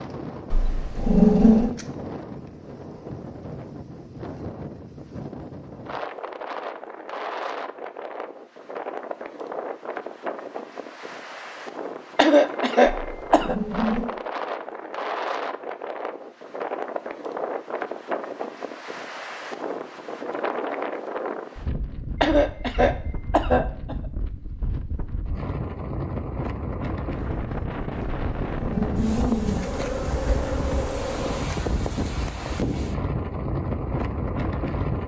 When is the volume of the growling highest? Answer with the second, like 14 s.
1 s.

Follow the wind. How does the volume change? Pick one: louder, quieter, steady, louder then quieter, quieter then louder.
louder.